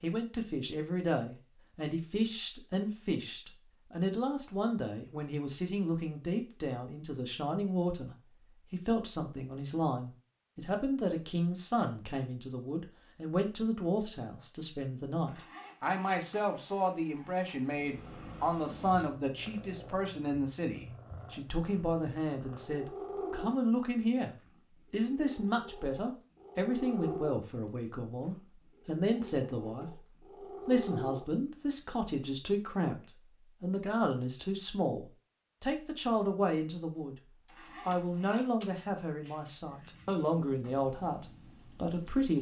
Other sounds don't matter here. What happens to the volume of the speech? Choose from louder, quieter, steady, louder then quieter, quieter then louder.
steady.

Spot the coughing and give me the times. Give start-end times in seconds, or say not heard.
not heard.